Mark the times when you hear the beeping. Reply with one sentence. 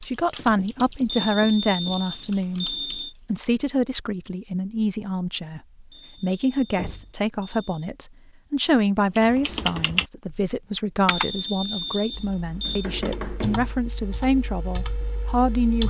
The beeping can be heard from 1.1 to 3.1 s, from 5.9 to 7.8 s and from 11.1 to 12.8 s.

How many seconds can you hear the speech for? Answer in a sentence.
The speech can be heard for 16 seconds in total.